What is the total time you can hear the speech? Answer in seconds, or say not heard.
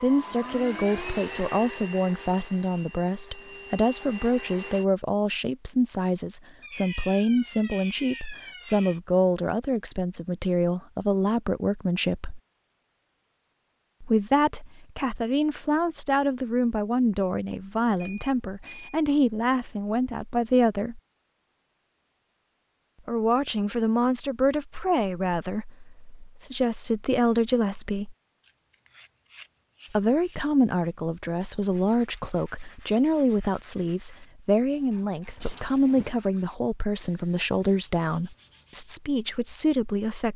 35 s.